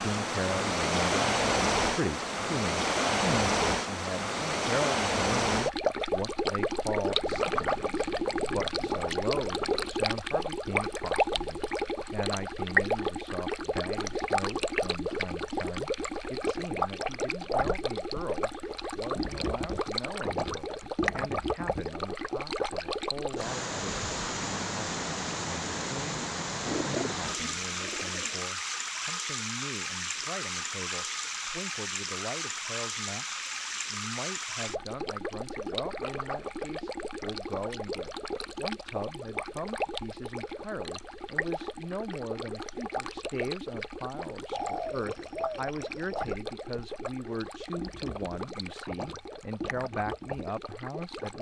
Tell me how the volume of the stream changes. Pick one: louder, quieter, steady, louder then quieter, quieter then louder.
quieter.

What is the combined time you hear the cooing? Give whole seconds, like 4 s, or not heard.
6 s.